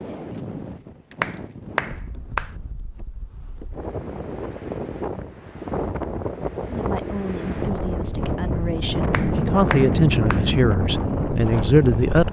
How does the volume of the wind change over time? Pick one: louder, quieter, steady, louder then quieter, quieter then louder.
louder.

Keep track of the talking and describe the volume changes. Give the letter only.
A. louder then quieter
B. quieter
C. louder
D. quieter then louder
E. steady
C.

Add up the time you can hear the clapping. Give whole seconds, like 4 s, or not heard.
3 s.